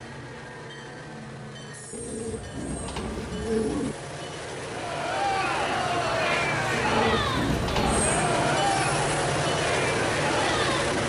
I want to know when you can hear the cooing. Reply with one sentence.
You can hear the cooing from 1.9 to 4.0 s and from 6.7 to 8.2 s.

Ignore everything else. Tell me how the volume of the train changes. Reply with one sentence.
The loudness of the train goes up.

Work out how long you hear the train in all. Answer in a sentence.
You can hear the train for 11 seconds altogether.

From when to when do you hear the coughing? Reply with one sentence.
The coughing can't be heard in this clip.